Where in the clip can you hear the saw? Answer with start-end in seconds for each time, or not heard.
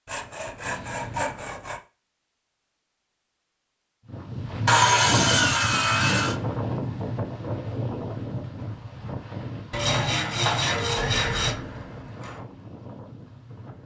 0.1-1.8, 4.7-6.3, 9.7-11.6.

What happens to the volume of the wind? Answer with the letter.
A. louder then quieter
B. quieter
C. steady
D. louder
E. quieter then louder
B.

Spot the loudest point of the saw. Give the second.
5 s.